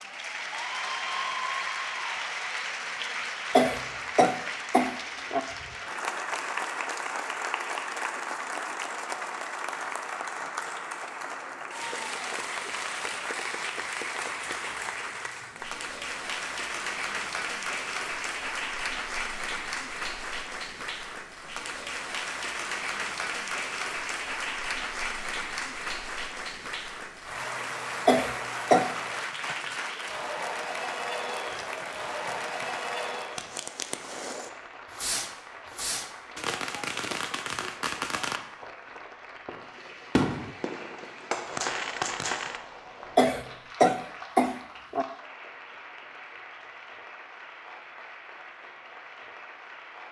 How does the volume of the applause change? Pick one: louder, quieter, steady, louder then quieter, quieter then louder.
quieter.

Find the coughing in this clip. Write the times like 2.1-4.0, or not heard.
3.5-5.4, 28.1-28.9, 43.1-45.0.